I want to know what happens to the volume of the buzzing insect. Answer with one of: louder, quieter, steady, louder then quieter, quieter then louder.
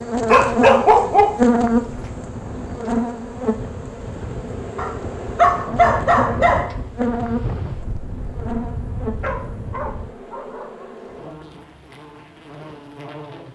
quieter.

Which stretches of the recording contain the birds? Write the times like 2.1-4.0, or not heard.
not heard.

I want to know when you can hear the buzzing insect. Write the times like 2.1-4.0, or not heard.
0.0-13.5.